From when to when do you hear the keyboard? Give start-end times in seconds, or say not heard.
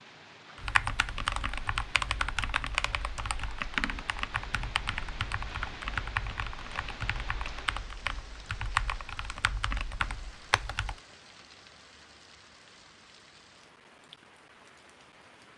0.6-11.0.